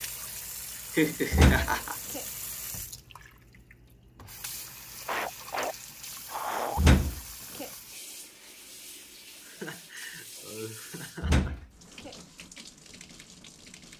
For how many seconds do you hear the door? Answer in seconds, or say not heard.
3 s.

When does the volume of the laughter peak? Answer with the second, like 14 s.
1 s.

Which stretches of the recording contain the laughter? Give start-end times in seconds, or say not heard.
0.9-2.0, 5.0-6.8, 9.4-11.6.